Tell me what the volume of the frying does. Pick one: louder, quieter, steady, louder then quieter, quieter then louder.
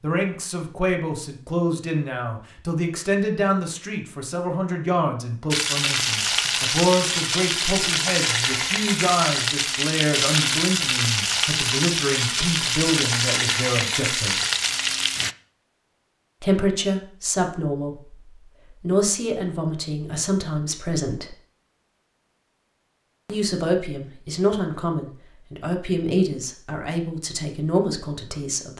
steady.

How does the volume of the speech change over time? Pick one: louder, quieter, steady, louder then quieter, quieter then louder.
steady.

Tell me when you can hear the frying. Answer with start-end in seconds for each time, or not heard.
5.5-15.3.